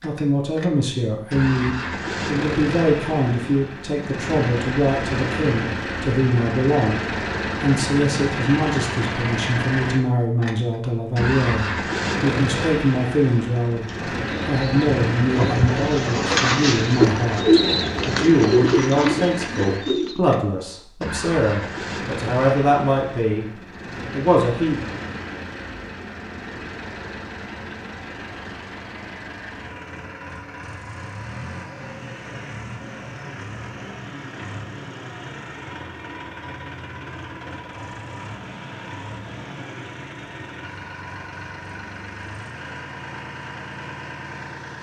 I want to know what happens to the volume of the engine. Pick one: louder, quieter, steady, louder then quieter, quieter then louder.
quieter.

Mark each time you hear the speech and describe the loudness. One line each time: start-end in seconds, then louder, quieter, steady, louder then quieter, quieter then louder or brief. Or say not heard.
0.0-23.4 steady
24.1-24.8 brief.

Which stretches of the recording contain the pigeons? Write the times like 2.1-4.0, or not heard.
13.8-20.2.